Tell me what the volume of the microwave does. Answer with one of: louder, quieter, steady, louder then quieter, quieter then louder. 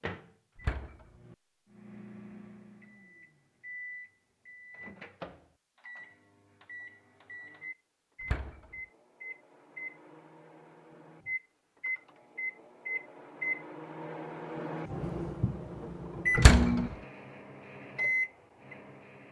louder.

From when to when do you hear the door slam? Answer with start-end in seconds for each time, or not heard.
0.6-1.1, 8.2-8.6, 16.4-16.8.